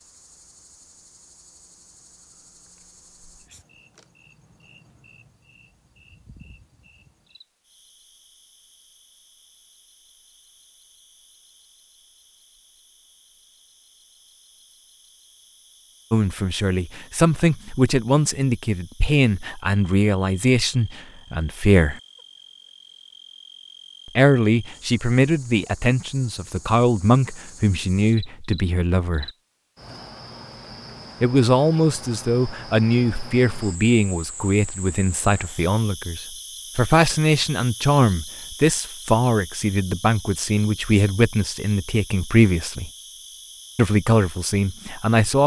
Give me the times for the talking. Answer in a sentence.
The talking can be heard from 16.1 to 22.0 s, from 24.1 to 29.3 s, from 31.2 to 42.9 s and from 43.8 to 45.4 s.